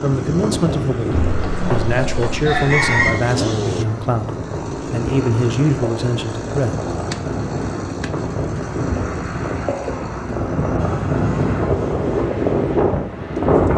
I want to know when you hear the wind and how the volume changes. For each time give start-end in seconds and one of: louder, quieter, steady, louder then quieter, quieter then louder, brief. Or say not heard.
0.0-13.7 louder.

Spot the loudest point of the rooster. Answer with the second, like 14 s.
3 s.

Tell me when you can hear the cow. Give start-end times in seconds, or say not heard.
not heard.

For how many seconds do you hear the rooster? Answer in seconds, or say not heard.
2 s.